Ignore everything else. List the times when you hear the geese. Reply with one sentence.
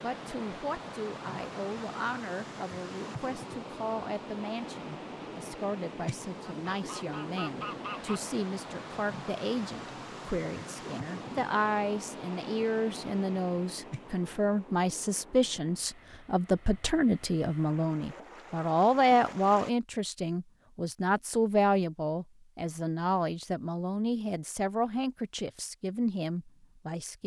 The geese can be heard from 6.7 to 8.2 s.